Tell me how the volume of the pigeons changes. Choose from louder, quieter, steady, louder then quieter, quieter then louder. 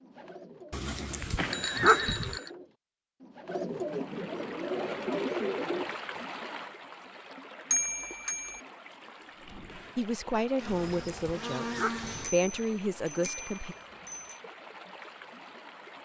louder.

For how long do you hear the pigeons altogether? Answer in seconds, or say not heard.
6 s.